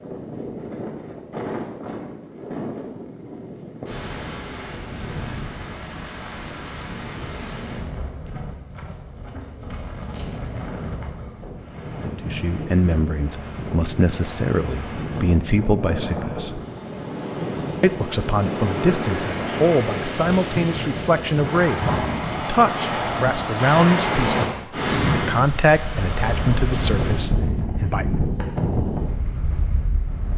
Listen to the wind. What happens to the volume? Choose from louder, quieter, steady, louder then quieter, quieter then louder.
louder.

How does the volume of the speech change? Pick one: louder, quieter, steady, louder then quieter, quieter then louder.
steady.